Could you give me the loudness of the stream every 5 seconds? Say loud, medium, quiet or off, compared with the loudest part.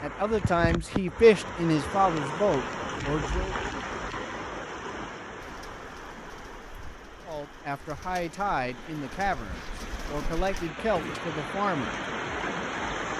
loud, medium, loud.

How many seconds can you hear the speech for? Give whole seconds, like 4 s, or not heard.
8 s.